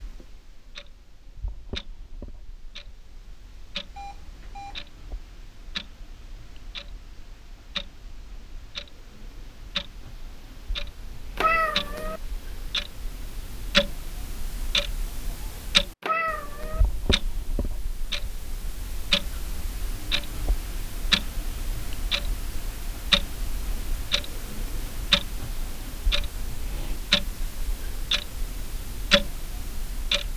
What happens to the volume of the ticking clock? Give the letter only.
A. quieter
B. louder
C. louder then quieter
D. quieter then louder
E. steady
B.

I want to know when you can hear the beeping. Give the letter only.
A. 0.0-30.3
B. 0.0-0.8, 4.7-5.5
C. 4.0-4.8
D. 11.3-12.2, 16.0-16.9
C.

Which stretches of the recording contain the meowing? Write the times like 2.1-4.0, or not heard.
11.3-12.2, 16.0-16.9.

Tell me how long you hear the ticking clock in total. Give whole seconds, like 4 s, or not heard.
30 s.